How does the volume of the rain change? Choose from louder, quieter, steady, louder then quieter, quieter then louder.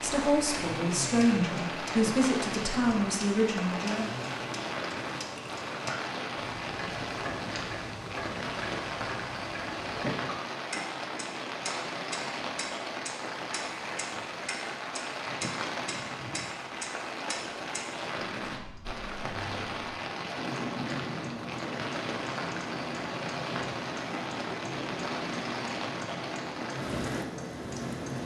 steady.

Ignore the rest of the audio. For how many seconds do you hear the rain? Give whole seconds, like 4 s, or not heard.
28 s.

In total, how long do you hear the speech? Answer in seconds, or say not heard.
4 s.